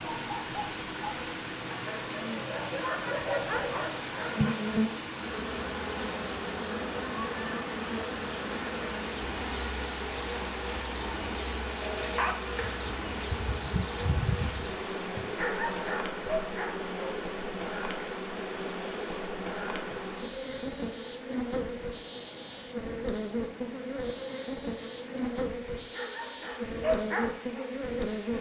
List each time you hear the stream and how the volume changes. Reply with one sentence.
You can hear the stream from 0.0 to 28.3 s, getting quieter.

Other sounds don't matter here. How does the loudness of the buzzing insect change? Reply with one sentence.
The loudness of the buzzing insect stays about the same.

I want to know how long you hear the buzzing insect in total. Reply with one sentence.
The buzzing insect can be heard for 28 seconds in total.